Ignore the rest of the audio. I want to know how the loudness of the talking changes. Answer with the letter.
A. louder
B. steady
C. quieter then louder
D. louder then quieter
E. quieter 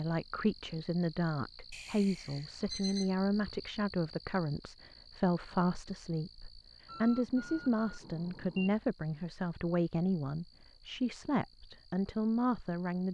B.